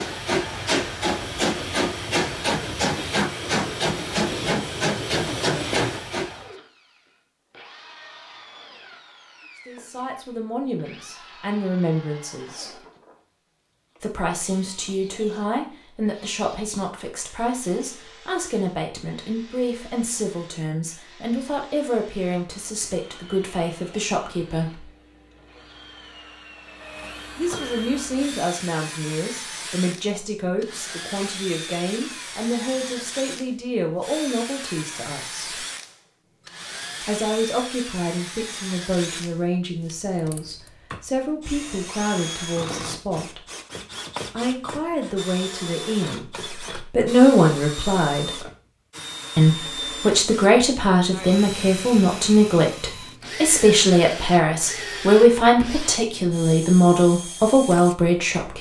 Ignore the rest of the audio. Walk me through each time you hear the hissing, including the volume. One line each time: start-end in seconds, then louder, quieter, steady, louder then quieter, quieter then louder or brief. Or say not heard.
0.0-6.5 steady.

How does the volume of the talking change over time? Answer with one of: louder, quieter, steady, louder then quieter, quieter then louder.
louder.